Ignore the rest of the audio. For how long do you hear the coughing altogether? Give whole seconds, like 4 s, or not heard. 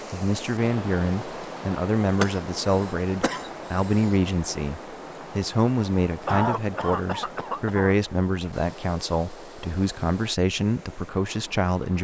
4 s.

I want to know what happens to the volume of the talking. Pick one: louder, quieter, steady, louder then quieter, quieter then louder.
steady.